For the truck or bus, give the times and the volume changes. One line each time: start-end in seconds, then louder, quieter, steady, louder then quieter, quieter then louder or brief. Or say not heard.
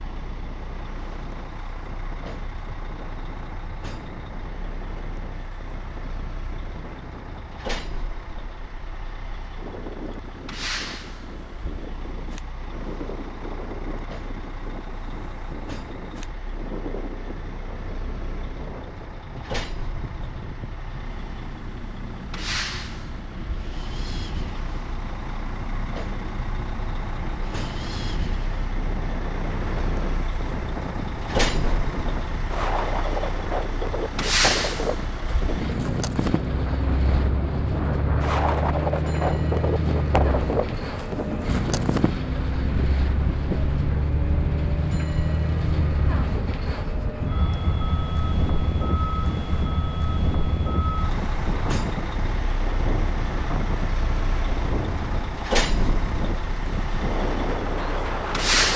0.0-58.7 louder.